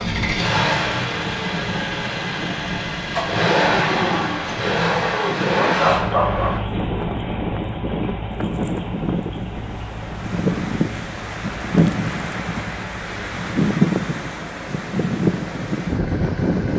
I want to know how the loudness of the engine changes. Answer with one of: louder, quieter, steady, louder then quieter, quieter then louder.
quieter.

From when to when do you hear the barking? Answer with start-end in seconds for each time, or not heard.
5.6-6.6.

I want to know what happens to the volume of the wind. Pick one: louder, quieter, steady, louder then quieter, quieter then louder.
louder.